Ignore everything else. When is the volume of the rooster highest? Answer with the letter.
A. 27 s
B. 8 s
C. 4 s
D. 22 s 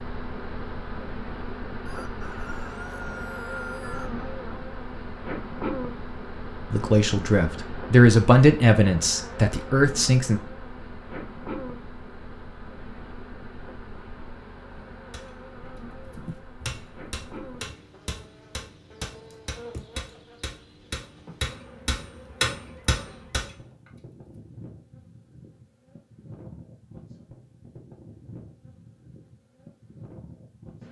C.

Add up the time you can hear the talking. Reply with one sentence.
You can hear the talking for 4 seconds altogether.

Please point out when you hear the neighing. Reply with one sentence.
You can't hear the neighing here.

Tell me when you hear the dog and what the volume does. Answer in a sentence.
The dog can't be heard in this clip.